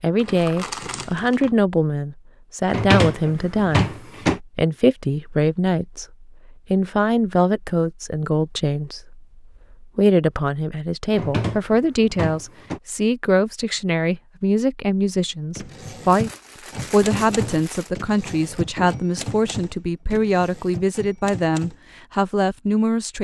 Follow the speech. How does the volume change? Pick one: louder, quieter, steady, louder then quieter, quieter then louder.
steady.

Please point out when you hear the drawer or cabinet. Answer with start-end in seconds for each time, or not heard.
2.6-4.4, 11.1-12.8, 17.2-19.0.